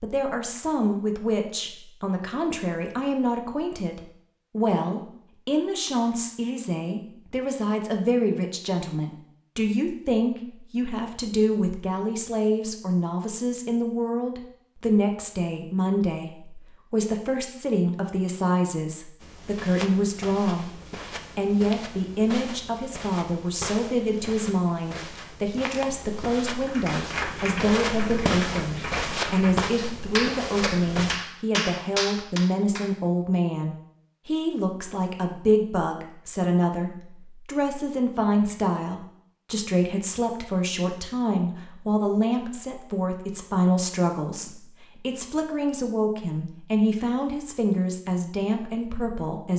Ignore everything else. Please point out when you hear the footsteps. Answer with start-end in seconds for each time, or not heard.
19.2-31.2.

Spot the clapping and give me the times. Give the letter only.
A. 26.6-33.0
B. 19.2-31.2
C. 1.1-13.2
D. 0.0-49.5
A.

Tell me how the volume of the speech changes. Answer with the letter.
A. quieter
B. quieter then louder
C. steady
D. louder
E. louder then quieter
C.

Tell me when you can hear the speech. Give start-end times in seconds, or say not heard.
0.0-49.5.